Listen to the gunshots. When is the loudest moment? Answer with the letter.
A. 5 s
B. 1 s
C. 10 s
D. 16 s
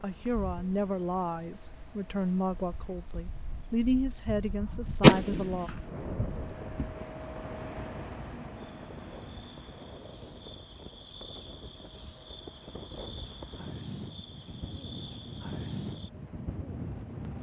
A.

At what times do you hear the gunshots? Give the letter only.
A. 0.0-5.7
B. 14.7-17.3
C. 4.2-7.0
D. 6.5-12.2
C.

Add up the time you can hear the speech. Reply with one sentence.
You can hear the speech for 6 seconds altogether.